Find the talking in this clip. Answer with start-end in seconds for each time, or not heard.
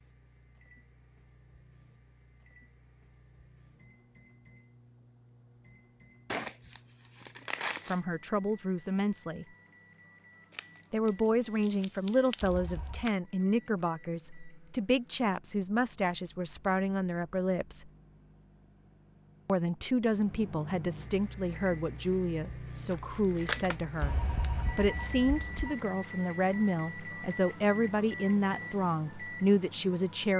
7.8-9.4, 10.9-17.9, 19.4-30.3.